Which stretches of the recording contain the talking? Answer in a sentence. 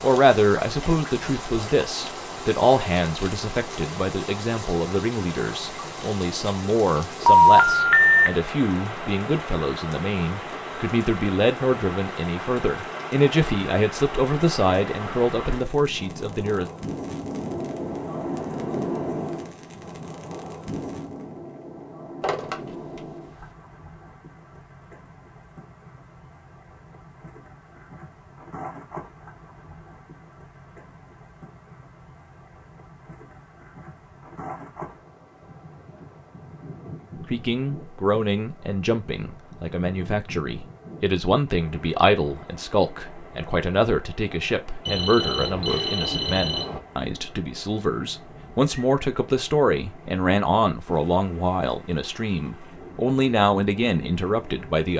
You can hear the talking from 0.0 to 16.7 s and from 37.3 to 54.9 s.